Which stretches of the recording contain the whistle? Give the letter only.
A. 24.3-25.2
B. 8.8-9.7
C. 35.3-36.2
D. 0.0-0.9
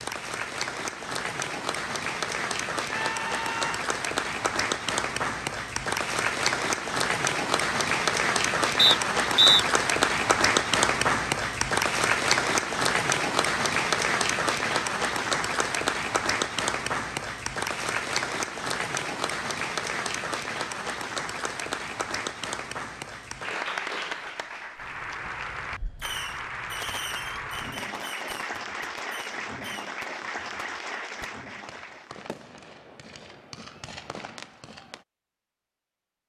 B.